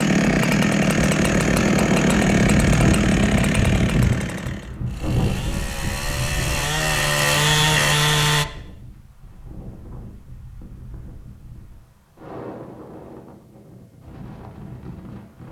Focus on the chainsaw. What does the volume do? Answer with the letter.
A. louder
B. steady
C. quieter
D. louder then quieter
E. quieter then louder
E.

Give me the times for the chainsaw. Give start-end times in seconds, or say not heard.
0.0-8.4.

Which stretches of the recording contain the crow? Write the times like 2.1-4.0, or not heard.
not heard.